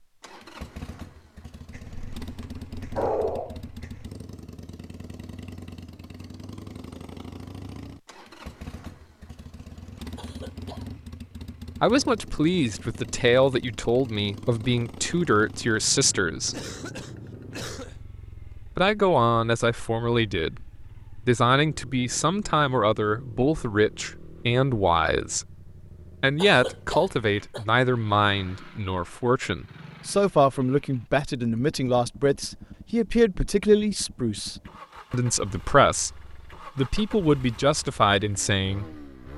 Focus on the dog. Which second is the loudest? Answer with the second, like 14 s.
3 s.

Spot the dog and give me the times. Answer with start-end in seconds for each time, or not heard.
1.7-4.1.